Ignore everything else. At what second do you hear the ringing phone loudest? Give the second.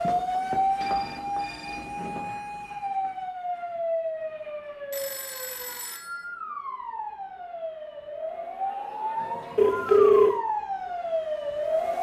10 s.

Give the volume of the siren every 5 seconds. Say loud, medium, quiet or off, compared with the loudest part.
loud, medium, loud.